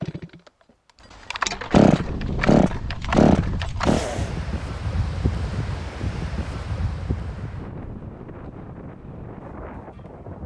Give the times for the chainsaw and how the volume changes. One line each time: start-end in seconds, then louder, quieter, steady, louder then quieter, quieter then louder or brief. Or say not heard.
0.0-4.3 louder.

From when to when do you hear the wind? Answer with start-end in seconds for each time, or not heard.
2.0-10.4.